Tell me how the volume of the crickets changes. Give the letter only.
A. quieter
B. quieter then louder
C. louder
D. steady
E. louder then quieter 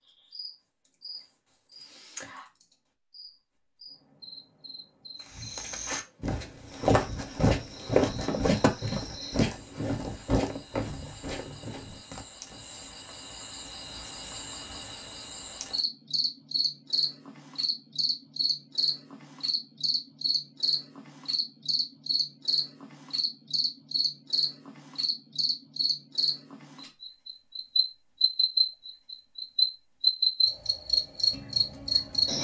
C.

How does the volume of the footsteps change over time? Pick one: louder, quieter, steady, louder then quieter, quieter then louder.
quieter.